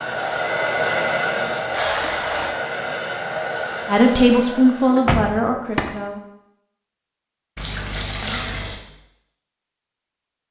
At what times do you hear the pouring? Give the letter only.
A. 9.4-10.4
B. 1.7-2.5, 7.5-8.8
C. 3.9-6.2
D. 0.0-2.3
B.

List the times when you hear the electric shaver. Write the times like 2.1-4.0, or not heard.
not heard.